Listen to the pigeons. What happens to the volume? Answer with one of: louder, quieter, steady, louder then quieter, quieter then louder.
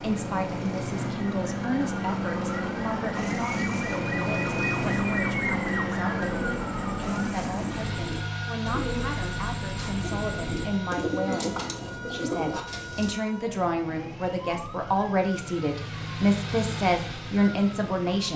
louder.